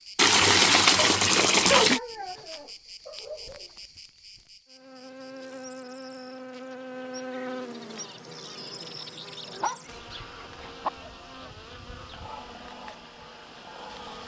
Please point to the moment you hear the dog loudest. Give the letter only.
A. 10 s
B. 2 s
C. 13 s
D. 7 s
B.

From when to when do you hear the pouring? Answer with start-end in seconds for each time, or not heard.
0.1-2.0.